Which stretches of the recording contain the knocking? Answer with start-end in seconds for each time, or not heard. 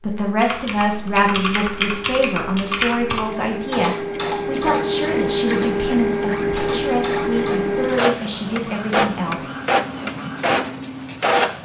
not heard.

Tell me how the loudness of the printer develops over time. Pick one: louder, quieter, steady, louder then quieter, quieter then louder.
louder.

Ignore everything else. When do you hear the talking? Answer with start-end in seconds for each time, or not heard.
0.0-9.6.